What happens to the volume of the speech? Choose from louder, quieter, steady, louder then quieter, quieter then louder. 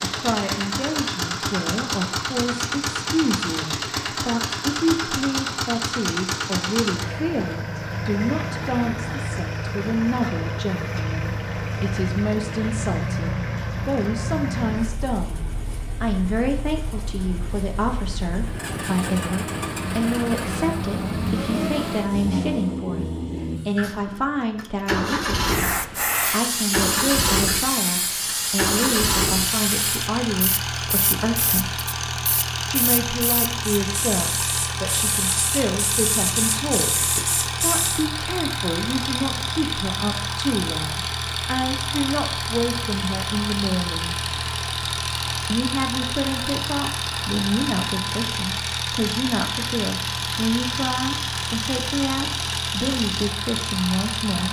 steady.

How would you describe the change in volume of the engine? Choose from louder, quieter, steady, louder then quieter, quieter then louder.
steady.